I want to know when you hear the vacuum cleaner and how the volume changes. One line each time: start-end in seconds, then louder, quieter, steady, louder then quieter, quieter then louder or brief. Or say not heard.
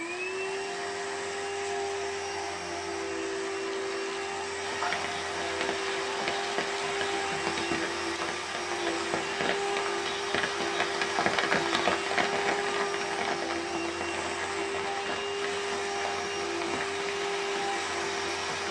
0.0-18.6 steady.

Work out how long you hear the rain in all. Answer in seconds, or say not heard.
14 s.